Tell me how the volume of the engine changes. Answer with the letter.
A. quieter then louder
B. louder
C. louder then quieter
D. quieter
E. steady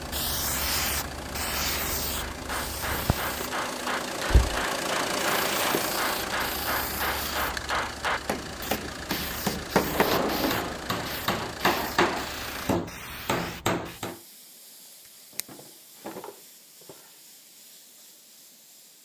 C.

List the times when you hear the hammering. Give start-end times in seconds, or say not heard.
2.1-14.2.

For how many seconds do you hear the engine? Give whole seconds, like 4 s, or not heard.
13 s.